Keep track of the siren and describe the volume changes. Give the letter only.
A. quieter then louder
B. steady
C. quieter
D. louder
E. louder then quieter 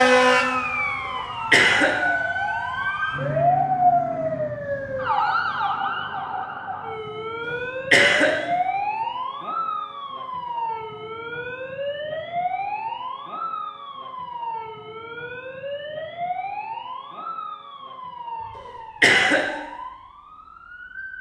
C.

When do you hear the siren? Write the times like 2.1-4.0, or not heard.
0.0-21.1.